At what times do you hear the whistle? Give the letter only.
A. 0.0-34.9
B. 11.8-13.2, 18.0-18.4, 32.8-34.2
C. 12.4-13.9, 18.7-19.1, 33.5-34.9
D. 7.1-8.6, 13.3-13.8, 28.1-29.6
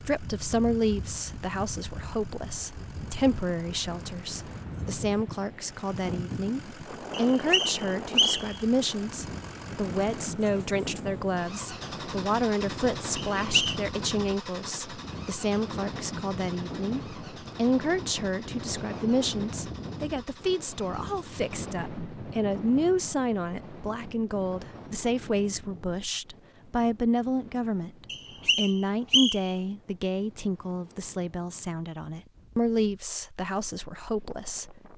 D.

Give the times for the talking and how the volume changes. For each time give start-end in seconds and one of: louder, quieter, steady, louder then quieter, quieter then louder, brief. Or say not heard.
0.0-34.9 steady.